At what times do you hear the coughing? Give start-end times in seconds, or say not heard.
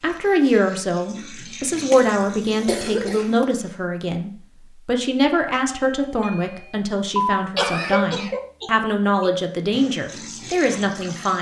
1.9-3.5, 7.2-9.3.